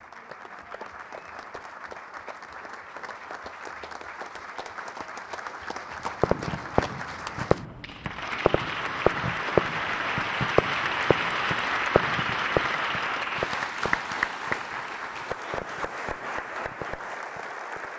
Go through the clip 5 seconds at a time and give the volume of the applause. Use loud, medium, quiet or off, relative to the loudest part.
quiet, medium, loud, medium.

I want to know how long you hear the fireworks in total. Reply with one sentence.
The fireworks can be heard for 12 seconds in total.